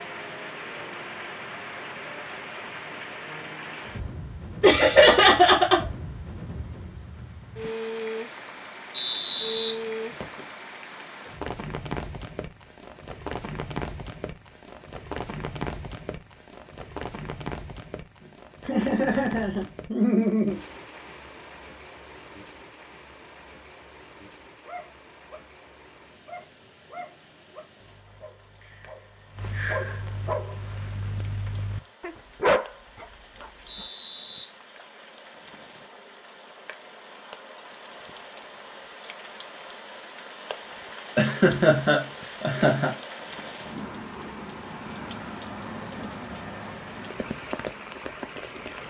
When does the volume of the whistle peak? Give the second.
9 s.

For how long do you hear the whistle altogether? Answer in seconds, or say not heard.
2 s.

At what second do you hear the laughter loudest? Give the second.
5 s.